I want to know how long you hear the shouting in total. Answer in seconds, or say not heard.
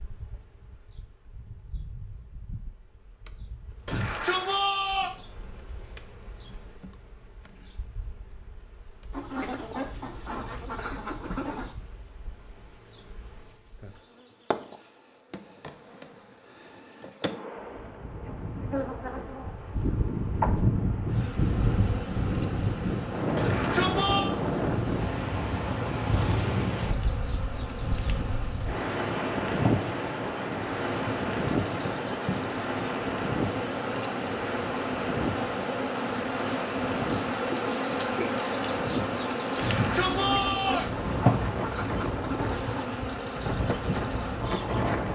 4 s.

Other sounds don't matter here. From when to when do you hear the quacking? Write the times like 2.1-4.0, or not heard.
9.1-11.8, 40.1-42.7.